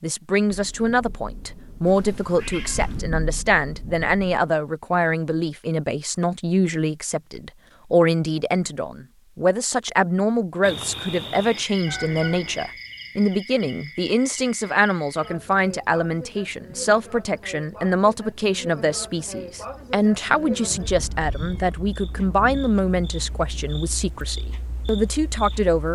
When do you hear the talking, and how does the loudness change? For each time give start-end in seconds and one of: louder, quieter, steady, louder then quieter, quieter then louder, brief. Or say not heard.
0.0-25.9 steady.